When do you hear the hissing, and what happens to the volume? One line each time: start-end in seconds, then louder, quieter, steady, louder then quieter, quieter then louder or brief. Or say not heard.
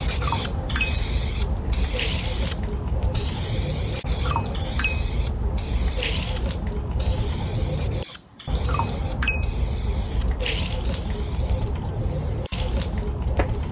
0.0-13.6 quieter.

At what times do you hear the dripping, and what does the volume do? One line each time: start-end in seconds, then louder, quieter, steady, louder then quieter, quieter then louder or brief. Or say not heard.
0.0-13.6 steady.